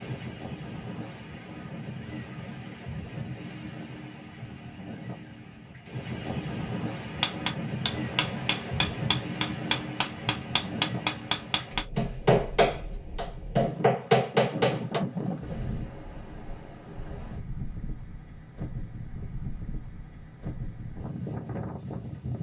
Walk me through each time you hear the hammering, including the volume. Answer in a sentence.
The hammering can be heard from 7.2 to 15.0 s, getting louder.